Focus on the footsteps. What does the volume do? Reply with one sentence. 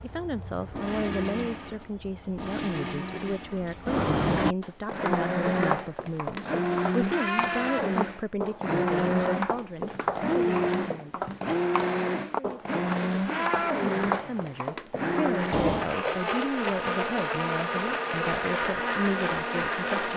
The loudness of the footsteps stays about the same.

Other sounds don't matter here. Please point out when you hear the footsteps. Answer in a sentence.
You can hear the footsteps from 4.6 to 15.4 s.